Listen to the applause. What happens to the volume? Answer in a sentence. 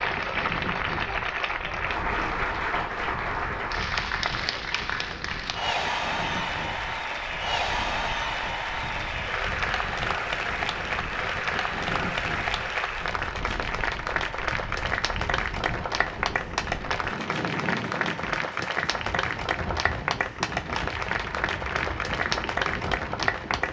The loudness of the applause stays about the same.